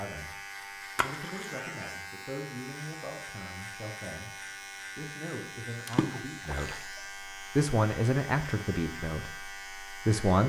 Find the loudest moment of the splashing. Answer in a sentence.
The volume of the splashing peaks at 6 seconds.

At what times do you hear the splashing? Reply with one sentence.
You can hear the splashing from 0.9 to 1.6 s and from 5.8 to 7.0 s.